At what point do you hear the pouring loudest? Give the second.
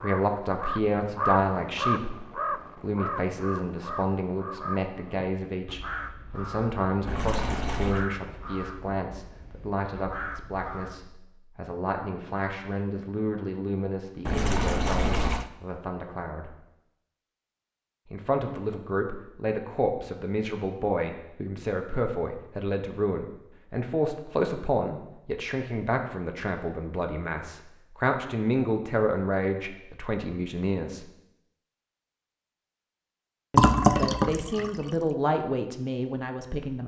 34 s.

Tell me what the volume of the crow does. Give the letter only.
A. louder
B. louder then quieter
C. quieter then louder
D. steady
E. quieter
E.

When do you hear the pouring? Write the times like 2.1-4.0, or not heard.
7.0-8.1, 14.2-15.5, 33.5-34.9.